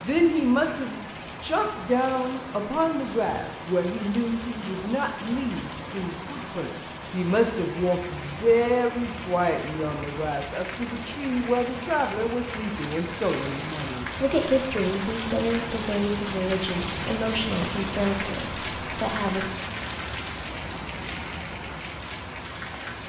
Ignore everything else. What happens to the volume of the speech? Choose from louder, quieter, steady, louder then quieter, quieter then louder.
steady.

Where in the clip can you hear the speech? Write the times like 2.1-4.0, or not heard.
0.0-19.4.